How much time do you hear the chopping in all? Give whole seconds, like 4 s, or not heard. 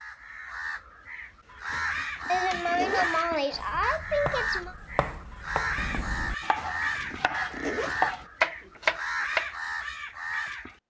6 s.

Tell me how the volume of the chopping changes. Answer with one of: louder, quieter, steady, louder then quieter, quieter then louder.
louder.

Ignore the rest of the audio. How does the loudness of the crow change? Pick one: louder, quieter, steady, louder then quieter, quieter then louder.
steady.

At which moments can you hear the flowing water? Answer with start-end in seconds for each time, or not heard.
not heard.